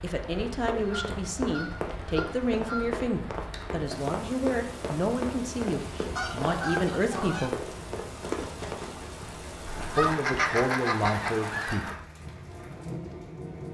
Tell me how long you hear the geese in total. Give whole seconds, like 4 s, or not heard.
6 s.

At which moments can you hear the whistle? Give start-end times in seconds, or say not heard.
not heard.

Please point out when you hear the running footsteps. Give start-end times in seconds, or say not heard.
0.3-8.8.